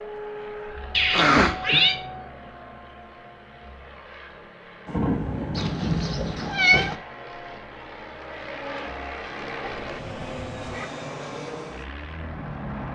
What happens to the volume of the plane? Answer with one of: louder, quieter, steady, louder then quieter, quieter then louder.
quieter then louder.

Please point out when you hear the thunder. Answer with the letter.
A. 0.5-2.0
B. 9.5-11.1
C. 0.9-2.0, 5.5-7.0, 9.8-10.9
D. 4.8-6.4
D.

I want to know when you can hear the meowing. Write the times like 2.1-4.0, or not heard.
0.9-2.0, 5.5-7.0, 9.8-10.9.